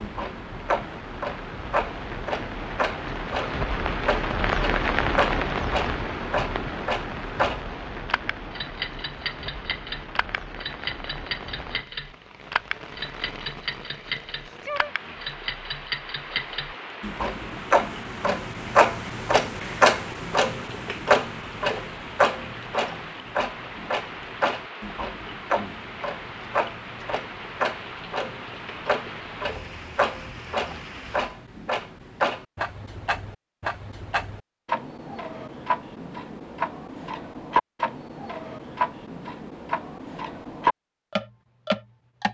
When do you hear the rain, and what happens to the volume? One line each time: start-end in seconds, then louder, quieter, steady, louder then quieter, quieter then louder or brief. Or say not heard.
0.0-31.4 quieter.